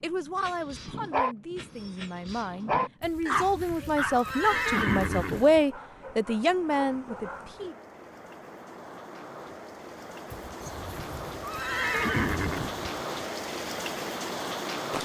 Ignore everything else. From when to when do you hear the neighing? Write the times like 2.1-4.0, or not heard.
3.0-5.6, 10.3-12.9.